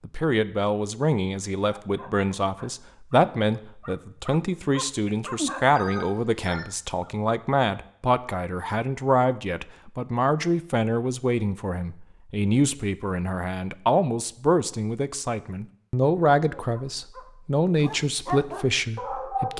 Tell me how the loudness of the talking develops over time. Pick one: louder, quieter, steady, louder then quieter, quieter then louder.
steady.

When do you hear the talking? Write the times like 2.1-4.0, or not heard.
0.0-19.5.